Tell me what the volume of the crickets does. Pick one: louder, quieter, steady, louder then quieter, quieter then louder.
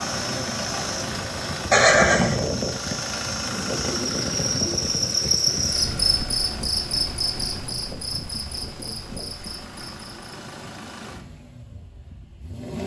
louder then quieter.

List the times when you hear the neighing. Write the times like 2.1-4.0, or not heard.
1.7-2.4.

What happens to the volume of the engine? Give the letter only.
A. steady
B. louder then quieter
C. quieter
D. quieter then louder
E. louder
C.